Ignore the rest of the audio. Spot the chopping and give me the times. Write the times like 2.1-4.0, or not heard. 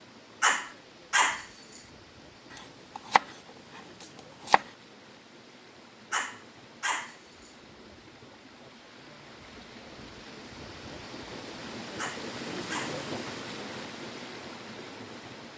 2.5-4.7.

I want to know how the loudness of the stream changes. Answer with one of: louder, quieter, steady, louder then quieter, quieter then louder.
louder.